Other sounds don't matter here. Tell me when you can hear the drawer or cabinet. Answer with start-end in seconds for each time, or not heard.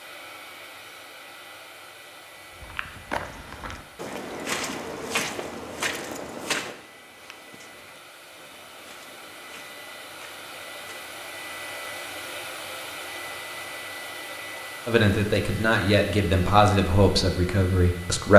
not heard.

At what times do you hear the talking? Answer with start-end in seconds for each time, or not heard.
14.8-18.3.